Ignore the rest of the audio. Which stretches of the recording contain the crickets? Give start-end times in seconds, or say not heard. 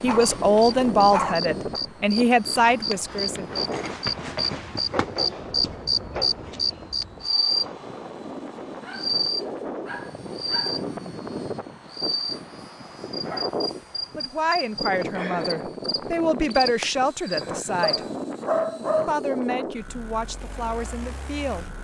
0.0-18.1.